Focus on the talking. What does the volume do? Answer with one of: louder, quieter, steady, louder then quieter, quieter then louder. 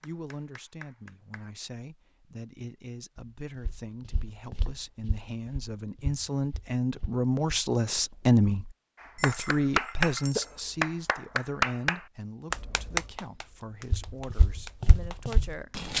louder then quieter.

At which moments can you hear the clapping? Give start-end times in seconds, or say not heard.
0.0-1.5, 9.0-15.9.